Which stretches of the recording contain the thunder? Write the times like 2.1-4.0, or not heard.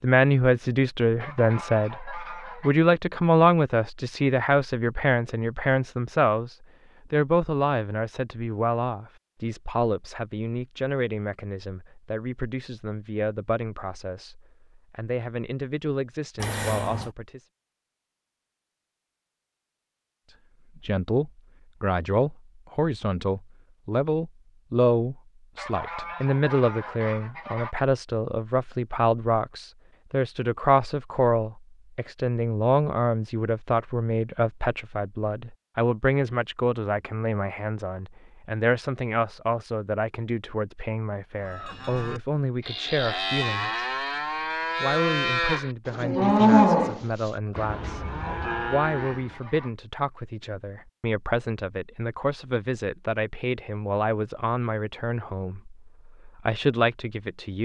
not heard.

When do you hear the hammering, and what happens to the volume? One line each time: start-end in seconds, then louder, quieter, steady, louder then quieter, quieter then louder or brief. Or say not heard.
not heard.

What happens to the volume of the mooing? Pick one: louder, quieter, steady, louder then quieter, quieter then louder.
louder then quieter.